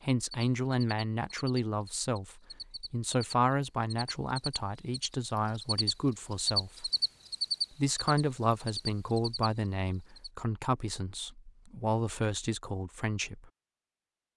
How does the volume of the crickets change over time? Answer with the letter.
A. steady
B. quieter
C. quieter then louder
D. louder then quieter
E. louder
D.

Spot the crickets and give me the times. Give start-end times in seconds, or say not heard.
0.1-10.3.